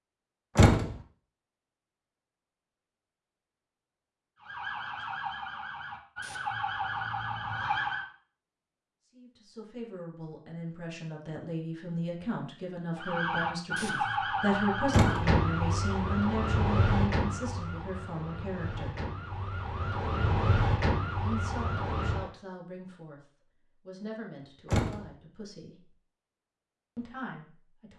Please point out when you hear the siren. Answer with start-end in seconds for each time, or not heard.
4.4-8.1, 12.9-22.3.